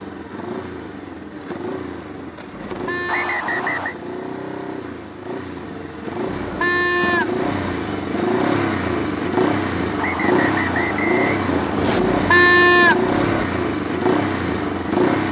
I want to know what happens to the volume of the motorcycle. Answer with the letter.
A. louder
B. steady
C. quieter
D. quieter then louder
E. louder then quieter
A.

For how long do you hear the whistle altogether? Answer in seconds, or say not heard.
3 s.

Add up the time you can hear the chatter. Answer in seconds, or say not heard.
not heard.